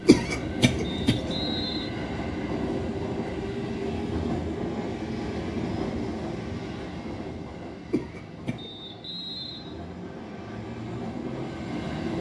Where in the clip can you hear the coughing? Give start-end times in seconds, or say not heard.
0.1-1.4, 7.9-8.7.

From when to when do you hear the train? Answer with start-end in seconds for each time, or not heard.
0.0-12.1.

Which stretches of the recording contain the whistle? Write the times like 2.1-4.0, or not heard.
0.8-1.9, 8.6-10.6.